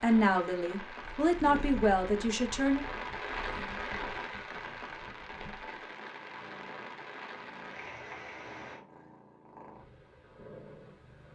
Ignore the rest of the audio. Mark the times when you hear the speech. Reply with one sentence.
You can hear the speech from 0.0 to 2.8 s.